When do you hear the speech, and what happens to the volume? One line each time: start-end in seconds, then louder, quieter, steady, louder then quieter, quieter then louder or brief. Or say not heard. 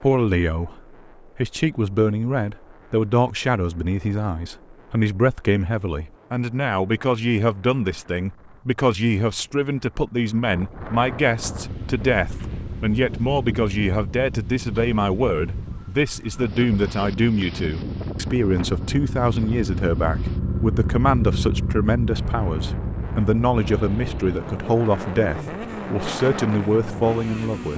0.0-27.7 steady.